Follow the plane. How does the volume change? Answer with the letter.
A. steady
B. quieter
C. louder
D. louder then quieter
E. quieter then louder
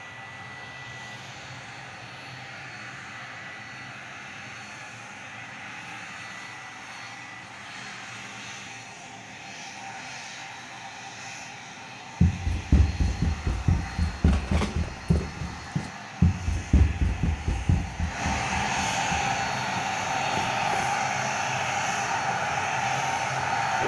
C.